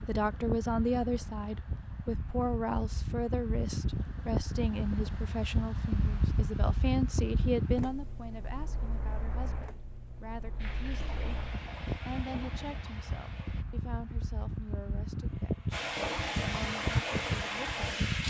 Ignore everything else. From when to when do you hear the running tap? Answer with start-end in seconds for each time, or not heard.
10.6-13.7, 15.7-18.2.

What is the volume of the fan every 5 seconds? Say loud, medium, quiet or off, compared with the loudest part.
loud, loud, medium, loud.